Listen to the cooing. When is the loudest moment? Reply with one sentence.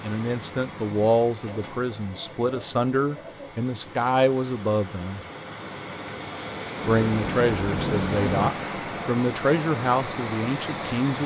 The volume of the cooing peaks at 8 seconds.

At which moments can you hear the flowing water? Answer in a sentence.
The flowing water can be heard from 0.0 to 11.2 s.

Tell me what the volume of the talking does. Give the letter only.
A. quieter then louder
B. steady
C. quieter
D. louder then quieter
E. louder
B.